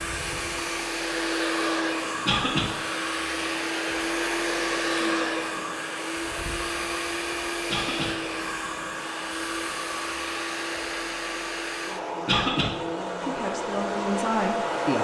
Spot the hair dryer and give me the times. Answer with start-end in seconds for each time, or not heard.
0.0-14.9.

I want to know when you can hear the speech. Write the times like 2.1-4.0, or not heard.
13.2-14.9.